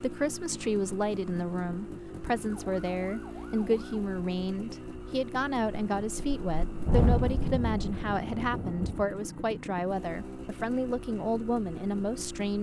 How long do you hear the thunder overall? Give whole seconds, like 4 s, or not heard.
3 s.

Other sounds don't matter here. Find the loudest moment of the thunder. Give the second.
7 s.